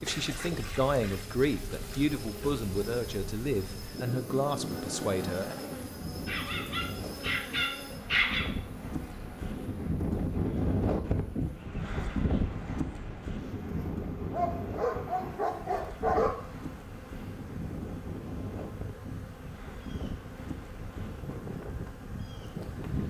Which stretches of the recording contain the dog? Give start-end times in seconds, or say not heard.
6.2-8.4, 14.3-16.3.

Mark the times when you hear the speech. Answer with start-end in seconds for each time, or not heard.
0.0-5.5.